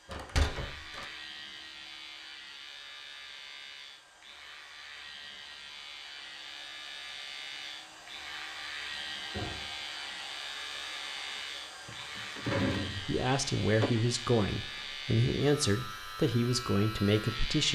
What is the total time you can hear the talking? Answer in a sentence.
The talking can be heard for 5 seconds in total.